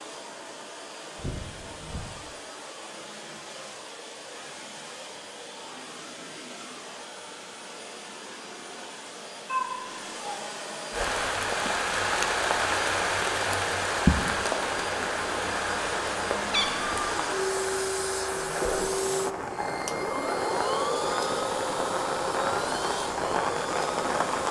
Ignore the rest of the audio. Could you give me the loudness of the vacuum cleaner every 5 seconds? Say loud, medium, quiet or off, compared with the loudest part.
medium, medium, medium, loud, loud.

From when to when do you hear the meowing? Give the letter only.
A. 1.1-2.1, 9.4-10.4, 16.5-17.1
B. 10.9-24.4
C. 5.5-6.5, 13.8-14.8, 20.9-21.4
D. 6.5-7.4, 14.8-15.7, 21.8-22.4
A.